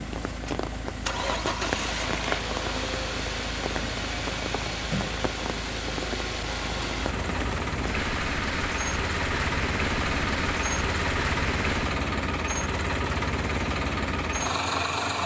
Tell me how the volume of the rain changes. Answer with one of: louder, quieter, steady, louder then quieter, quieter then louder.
steady.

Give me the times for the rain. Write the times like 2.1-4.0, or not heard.
0.0-11.9.